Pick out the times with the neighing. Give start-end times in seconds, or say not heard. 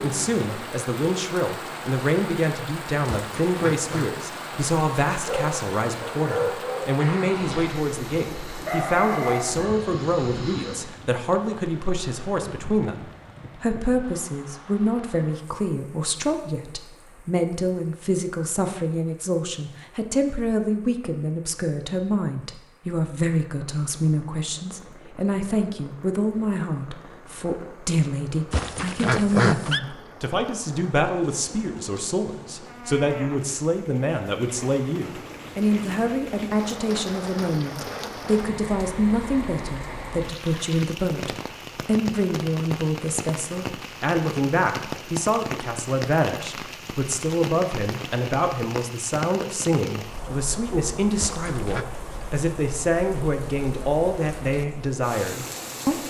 3.1-4.1, 28.5-29.8, 51.2-51.9.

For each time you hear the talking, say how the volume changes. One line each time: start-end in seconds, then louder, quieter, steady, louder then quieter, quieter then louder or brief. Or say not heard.
0.0-56.0 steady.